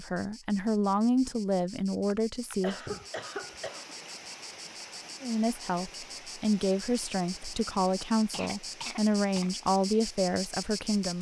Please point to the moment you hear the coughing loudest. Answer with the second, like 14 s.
3 s.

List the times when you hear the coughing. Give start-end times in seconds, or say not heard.
2.1-4.0, 8.3-9.5.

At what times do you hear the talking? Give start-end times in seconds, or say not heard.
0.0-3.0, 5.2-11.1.